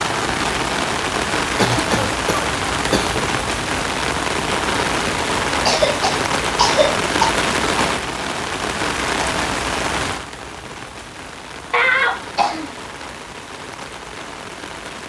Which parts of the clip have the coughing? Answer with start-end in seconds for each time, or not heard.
1.6-3.2, 5.7-7.3, 11.7-12.8.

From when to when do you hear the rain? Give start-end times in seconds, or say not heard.
0.0-15.0.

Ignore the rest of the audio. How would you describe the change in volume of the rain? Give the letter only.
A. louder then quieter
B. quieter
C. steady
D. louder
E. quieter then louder
B.